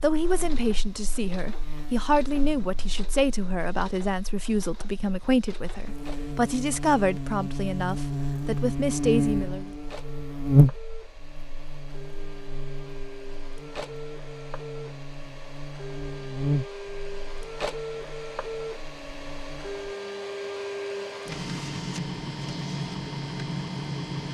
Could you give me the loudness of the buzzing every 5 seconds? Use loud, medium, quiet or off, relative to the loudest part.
quiet, loud, loud, medium, off.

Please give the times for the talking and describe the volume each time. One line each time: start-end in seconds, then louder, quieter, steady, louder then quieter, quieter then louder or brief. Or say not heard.
0.0-9.7 steady.